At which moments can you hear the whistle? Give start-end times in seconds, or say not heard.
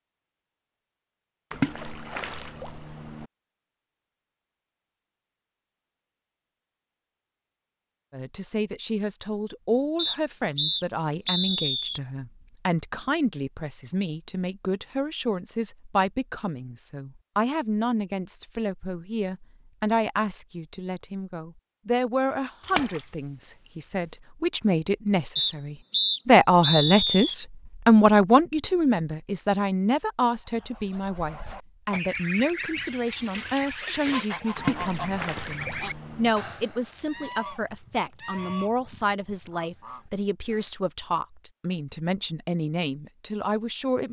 9.9-12.0, 25.4-27.4.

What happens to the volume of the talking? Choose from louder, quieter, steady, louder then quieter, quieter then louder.
louder then quieter.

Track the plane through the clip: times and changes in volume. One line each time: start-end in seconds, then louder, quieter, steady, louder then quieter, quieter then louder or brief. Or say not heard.
not heard.